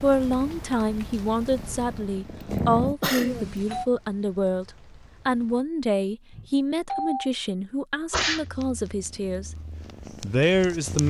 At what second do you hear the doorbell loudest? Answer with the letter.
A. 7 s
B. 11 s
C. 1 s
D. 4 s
A.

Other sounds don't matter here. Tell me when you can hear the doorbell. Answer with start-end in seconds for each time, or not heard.
3.2-3.9, 6.3-7.3.